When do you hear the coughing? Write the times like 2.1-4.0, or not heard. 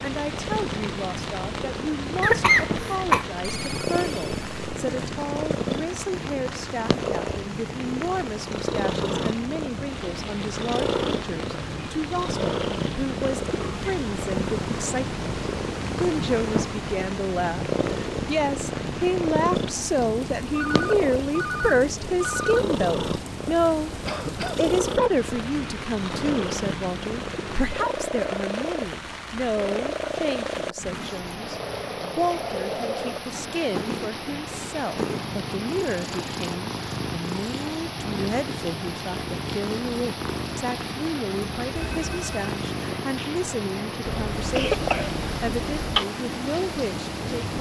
2.2-3.2, 24.1-24.6, 44.0-46.0.